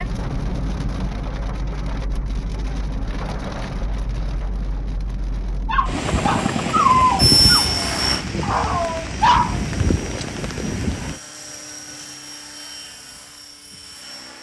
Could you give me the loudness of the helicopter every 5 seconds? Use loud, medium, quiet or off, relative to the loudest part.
off, loud, quiet.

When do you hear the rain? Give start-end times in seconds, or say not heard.
0.0-11.2.